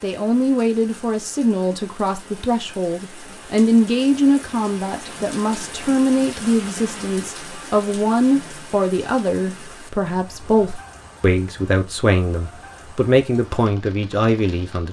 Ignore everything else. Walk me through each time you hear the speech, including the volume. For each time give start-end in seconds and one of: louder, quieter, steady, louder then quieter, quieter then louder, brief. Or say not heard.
0.0-14.8 steady.